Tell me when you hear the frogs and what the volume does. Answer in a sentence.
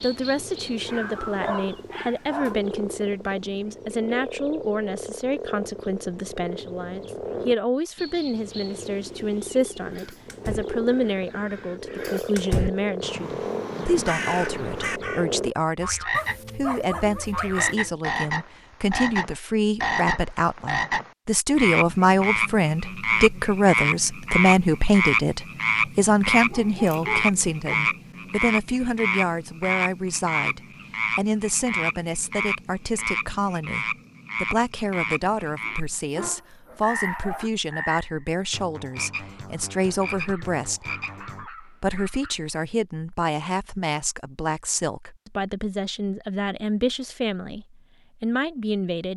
The frogs can be heard from 0.0 to 41.5 s, getting louder then quieter.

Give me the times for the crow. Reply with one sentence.
The crow can be heard from 9.8 to 15.2 s.